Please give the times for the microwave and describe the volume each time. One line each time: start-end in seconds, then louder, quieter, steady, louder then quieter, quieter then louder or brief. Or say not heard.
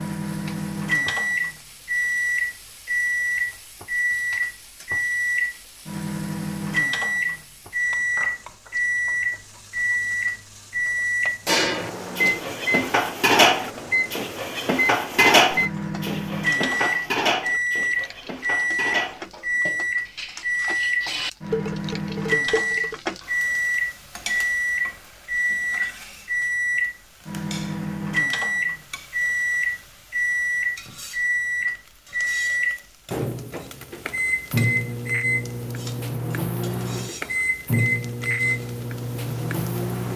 0.0-40.1 steady.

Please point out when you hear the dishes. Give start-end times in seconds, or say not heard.
11.4-22.9.